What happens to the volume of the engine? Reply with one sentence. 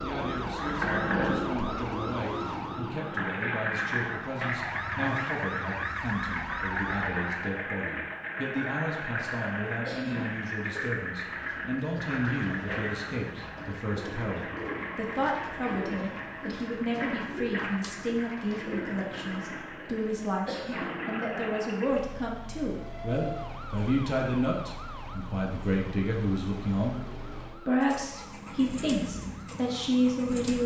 The loudness of the engine goes down.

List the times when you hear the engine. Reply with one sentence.
The engine can be heard from 0.0 to 30.6 s.